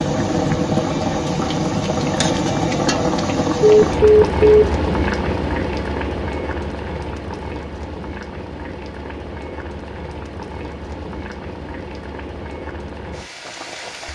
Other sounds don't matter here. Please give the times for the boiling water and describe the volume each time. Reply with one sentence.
The boiling water can be heard from 0.0 to 14.0 s, getting quieter.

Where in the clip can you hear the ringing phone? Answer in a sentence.
You can hear the ringing phone from 3.6 to 4.7 s.